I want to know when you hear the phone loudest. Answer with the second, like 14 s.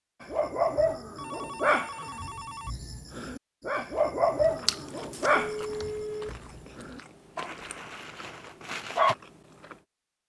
6 s.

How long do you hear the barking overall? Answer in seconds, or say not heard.
9 s.